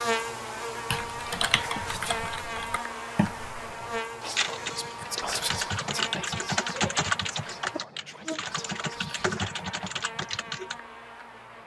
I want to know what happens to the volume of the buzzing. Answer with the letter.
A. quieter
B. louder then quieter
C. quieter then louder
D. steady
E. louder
A.